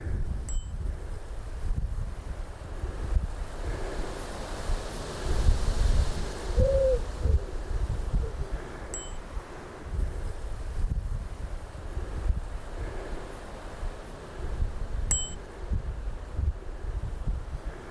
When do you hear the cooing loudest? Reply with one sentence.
The volume of the cooing peaks at 7 seconds.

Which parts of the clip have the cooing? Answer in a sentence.
You can hear the cooing from 6.5 to 8.4 s.